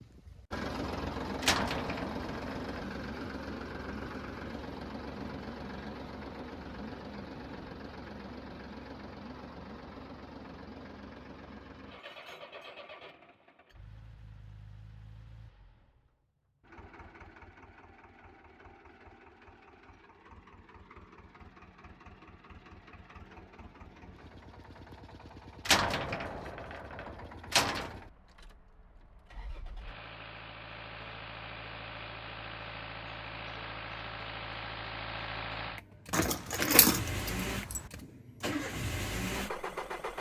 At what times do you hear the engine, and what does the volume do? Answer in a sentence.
You can hear the engine from 0.0 to 40.1 s, getting quieter then louder.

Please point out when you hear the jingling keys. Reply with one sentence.
The jingling keys can be heard from 36.1 to 37.9 s.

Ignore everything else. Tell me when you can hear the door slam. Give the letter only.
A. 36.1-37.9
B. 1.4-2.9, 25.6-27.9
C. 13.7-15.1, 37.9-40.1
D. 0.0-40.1
B.